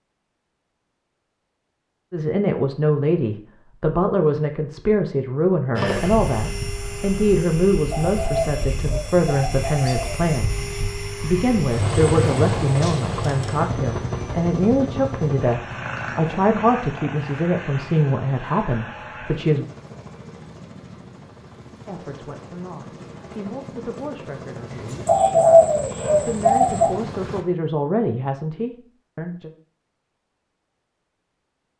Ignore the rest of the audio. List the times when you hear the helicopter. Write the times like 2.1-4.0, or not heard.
5.8-27.4.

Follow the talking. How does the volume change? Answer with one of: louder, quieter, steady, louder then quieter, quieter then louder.
quieter.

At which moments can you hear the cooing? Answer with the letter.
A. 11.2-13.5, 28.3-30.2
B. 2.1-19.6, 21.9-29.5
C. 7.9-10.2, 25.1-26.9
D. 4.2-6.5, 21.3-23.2
C.